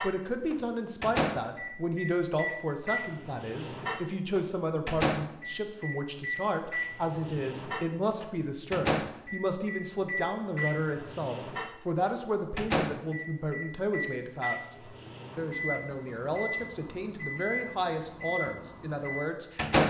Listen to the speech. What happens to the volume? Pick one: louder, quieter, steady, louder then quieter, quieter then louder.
steady.